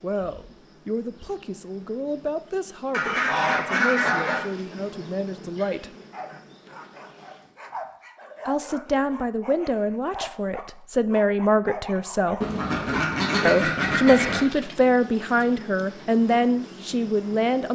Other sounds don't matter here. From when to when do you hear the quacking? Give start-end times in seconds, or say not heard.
2.9-4.5, 12.4-14.4.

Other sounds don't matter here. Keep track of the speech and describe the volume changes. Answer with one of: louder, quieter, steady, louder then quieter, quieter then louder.
louder.